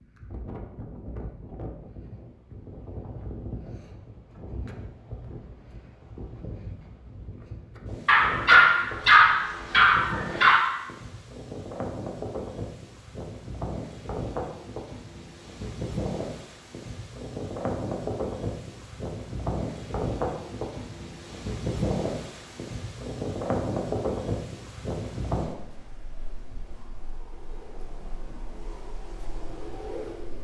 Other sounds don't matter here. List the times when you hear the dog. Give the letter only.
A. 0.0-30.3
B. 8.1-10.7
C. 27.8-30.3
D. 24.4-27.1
B.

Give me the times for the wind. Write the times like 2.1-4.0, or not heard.
0.0-30.3.